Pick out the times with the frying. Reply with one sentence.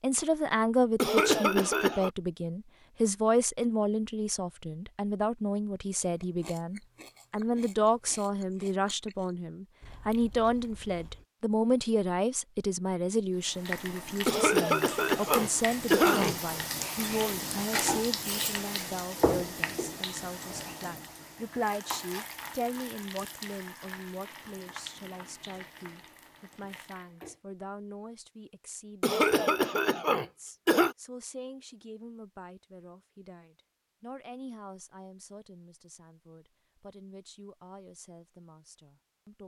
The frying can be heard from 13.3 to 27.4 s.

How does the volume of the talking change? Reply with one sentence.
The loudness of the talking goes down.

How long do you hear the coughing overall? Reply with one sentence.
The coughing can be heard for 5 seconds in total.